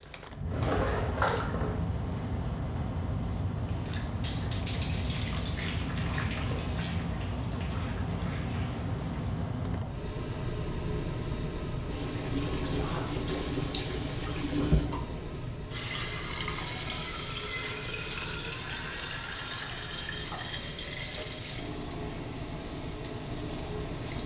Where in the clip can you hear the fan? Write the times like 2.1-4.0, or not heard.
0.0-24.2.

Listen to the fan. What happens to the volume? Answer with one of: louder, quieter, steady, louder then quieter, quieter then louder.
quieter.